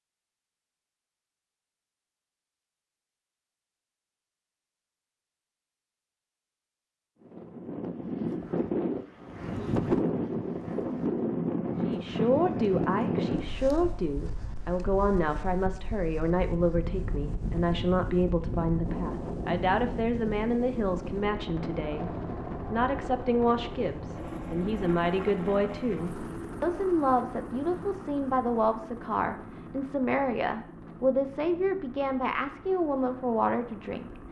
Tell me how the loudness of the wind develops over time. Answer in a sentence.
The loudness of the wind goes down.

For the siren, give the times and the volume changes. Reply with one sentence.
You can't hear the siren here.